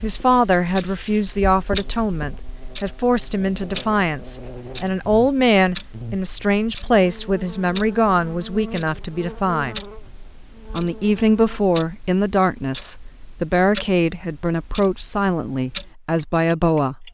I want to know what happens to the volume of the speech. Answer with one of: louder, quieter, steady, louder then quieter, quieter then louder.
steady.